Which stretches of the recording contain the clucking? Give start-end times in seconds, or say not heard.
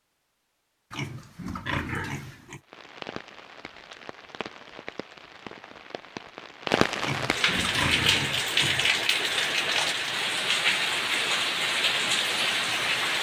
not heard.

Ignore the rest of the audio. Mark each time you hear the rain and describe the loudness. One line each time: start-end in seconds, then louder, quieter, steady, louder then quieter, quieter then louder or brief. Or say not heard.
2.6-13.1 louder.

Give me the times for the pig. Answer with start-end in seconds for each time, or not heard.
0.9-2.6, 7.0-8.9.